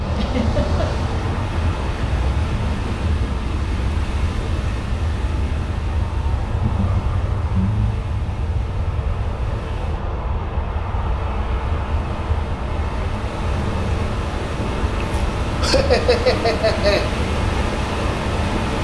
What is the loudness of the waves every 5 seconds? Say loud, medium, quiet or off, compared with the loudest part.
loud, medium, medium, loud.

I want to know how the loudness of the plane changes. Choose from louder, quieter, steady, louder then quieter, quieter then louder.
steady.